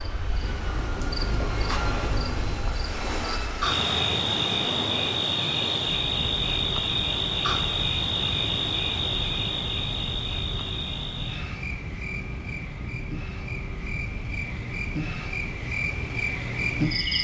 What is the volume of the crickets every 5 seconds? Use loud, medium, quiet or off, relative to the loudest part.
loud, loud, medium, loud.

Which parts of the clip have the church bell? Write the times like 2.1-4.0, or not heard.
not heard.